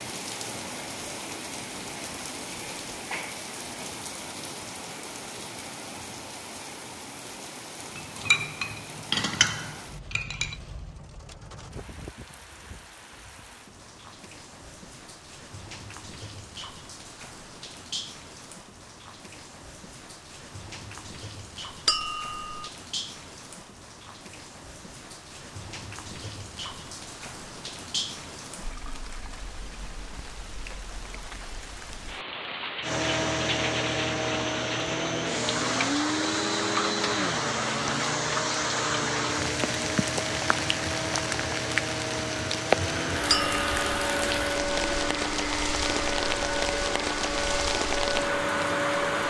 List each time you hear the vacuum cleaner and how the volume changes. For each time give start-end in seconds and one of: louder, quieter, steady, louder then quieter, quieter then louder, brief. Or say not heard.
32.8-49.2 steady.